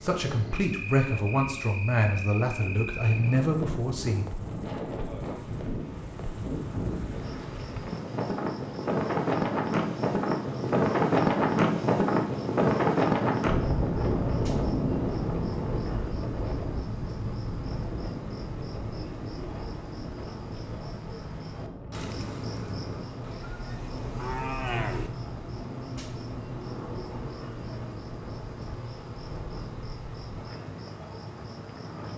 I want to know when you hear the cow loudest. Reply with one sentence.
The volume of the cow peaks at 25 seconds.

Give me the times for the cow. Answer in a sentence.
You can hear the cow from 23.2 to 25.1 s.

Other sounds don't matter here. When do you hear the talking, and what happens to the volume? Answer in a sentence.
You can hear the talking from 0.0 to 4.2 s, at a steady volume.